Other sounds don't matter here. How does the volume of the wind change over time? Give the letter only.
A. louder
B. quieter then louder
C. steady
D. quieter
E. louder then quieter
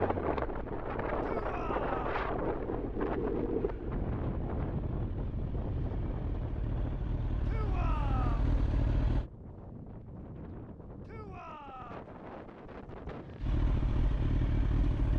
D.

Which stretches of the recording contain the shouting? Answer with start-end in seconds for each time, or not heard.
1.2-2.2, 7.5-8.6, 11.1-12.1.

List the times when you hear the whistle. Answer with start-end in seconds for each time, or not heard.
not heard.